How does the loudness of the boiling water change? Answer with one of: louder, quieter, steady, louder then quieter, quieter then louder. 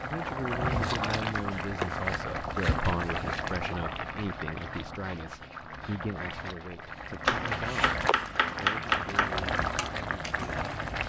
quieter then louder.